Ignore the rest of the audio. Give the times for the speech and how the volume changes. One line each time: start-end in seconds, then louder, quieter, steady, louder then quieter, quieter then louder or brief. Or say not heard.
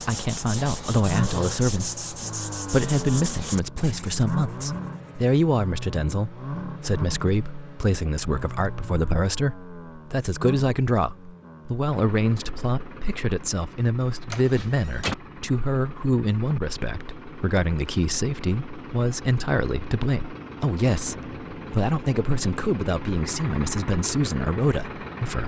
0.1-25.4 steady.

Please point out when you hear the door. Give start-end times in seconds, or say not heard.
14.3-15.2.